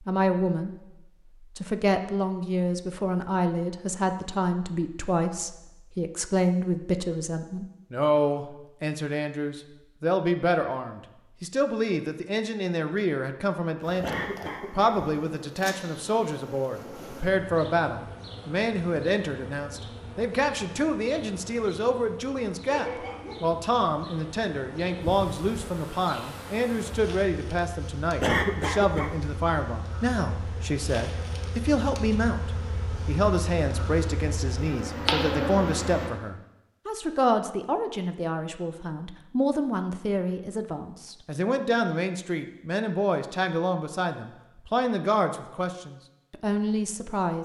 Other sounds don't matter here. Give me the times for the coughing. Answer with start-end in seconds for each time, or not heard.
14.0-15.0, 28.2-29.1.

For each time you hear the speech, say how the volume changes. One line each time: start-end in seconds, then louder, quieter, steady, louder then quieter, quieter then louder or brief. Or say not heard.
0.0-0.8 brief
1.6-47.4 steady.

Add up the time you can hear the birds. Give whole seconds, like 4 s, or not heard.
not heard.